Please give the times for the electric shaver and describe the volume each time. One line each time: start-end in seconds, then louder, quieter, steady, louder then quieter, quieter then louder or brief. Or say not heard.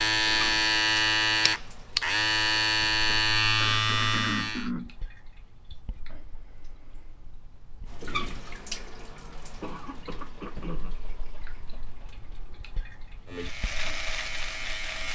0.0-4.7 steady
13.2-15.0 brief.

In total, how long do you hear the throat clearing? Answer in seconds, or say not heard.
3 s.